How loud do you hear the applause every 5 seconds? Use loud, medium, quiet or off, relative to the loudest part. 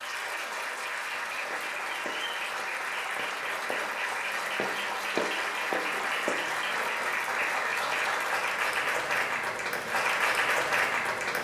medium, loud, loud.